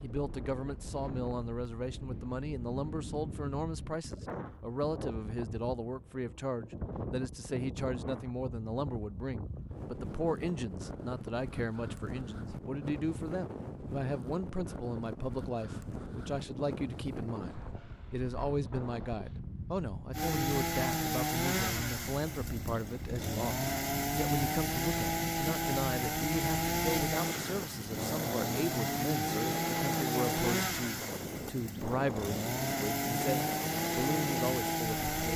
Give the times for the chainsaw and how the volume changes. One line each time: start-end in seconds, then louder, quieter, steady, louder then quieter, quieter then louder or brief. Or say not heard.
20.1-35.3 steady.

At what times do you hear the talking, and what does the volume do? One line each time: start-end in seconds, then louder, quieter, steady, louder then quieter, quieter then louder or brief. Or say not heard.
0.0-35.3 steady.